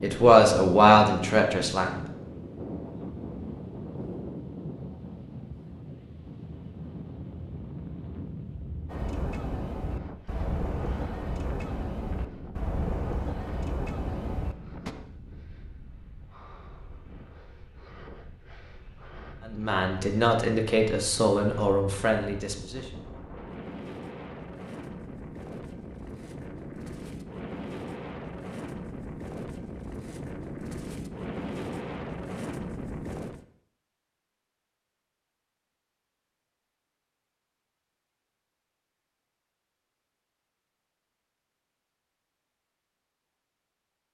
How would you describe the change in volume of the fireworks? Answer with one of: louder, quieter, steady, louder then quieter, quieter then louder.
steady.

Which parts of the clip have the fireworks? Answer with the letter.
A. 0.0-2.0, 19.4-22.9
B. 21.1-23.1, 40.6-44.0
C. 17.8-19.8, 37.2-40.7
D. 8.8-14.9
D.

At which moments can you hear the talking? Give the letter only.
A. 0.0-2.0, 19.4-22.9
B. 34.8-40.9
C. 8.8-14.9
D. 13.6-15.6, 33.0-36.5
A.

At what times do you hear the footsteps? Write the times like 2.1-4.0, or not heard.
not heard.